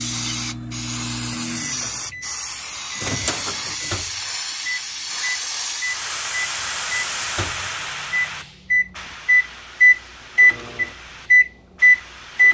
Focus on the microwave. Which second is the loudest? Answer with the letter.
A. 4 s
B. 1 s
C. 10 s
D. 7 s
C.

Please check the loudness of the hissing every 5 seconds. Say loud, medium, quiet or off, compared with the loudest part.
loud, loud, quiet.